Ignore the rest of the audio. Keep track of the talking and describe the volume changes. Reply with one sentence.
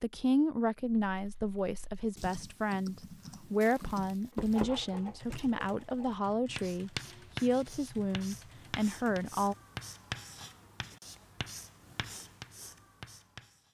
The volume of the talking stays about the same.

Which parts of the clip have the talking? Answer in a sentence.
The talking can be heard from 0.0 to 9.6 s.